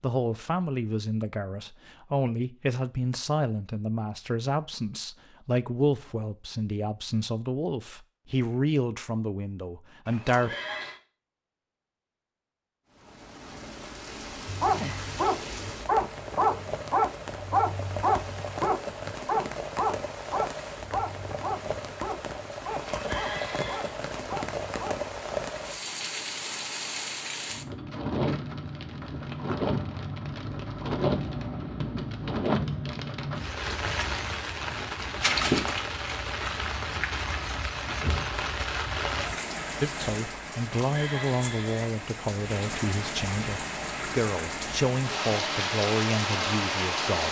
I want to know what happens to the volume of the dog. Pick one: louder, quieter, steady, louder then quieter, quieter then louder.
quieter.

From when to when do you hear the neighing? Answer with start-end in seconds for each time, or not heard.
10.1-11.0, 22.7-23.9, 40.5-42.0.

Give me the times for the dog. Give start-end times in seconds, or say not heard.
14.4-25.1.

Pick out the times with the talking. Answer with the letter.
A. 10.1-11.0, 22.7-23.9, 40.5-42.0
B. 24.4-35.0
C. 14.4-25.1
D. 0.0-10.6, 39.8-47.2
D.